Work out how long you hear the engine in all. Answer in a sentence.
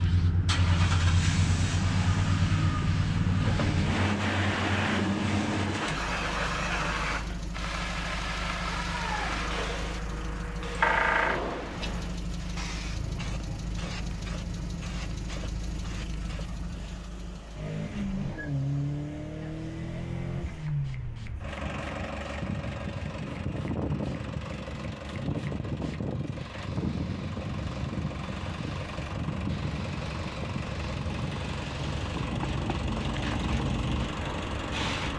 You can hear the engine for 35 seconds altogether.